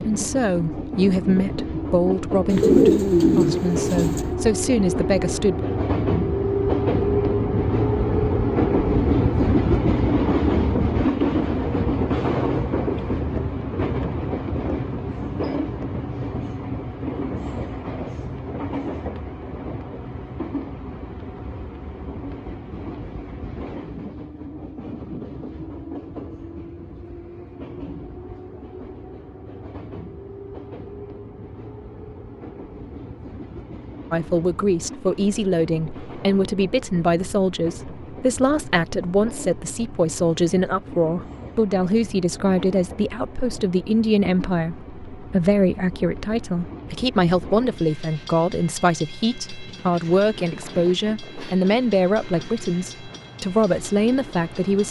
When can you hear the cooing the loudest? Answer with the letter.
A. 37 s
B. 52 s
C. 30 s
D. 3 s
D.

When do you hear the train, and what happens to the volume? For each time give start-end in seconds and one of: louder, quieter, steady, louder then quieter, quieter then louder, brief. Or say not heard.
0.0-54.8 quieter.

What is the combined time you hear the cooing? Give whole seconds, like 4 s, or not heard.
2 s.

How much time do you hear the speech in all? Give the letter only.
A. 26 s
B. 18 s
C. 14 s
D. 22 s
A.